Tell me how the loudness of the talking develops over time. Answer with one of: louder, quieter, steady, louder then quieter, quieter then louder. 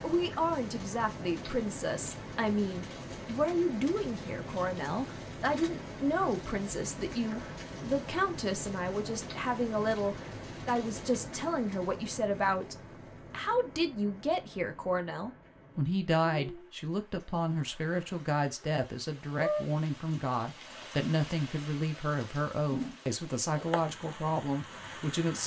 steady.